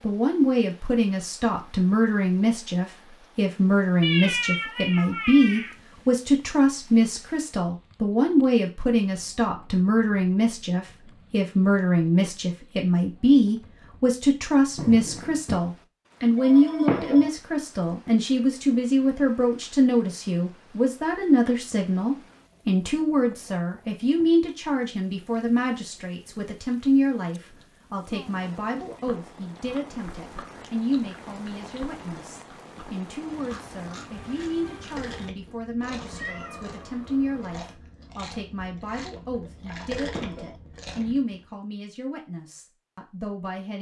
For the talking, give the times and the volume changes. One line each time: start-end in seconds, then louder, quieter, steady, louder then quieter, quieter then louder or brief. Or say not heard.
0.0-43.7 quieter.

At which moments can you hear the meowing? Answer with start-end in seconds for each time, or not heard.
4.0-5.8, 14.8-15.6, 35.8-37.8.